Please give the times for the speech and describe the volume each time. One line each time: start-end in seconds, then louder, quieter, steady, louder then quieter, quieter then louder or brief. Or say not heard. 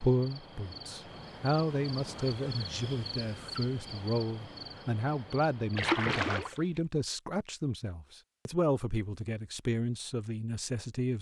0.0-11.1 steady.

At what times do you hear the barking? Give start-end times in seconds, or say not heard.
not heard.